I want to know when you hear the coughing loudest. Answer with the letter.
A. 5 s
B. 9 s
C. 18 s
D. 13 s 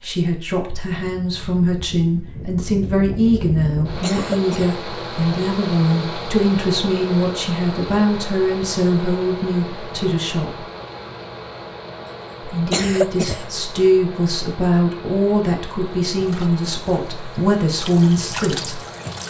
D.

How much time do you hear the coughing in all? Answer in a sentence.
The coughing can be heard for 2 seconds in total.